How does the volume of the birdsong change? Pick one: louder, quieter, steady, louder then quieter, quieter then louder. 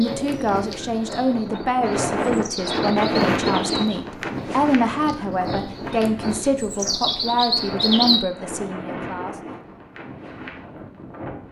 louder.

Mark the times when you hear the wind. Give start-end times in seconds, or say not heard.
0.0-11.4.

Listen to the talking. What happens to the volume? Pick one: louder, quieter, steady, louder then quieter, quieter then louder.
steady.